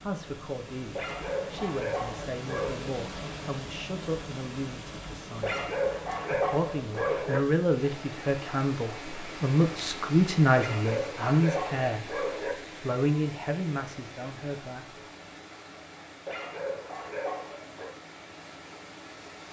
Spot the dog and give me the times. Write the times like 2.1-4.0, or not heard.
0.9-2.9, 5.4-7.4, 10.6-12.6, 16.2-17.9.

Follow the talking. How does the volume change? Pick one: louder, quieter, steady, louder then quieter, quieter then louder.
louder then quieter.